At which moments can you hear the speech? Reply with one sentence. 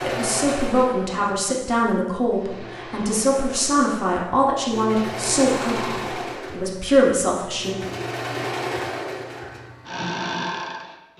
The speech can be heard from 0.0 to 7.8 s.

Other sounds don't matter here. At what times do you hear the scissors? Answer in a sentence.
The scissors can't be heard in this clip.